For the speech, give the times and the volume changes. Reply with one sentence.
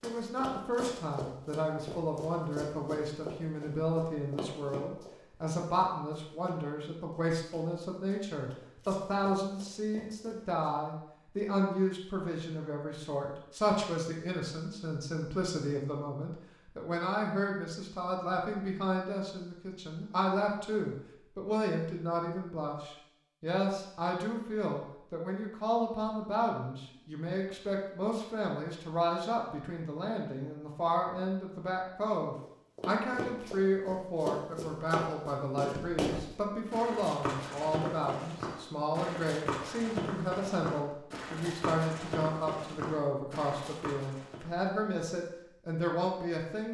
The speech can be heard from 0.0 to 46.6 s, at a steady volume.